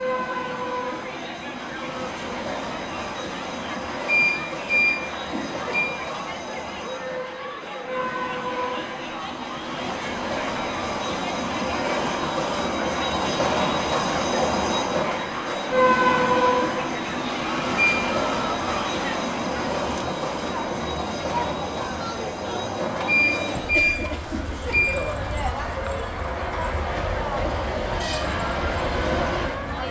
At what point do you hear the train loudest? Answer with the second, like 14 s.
16 s.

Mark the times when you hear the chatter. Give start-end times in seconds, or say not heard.
0.0-29.8.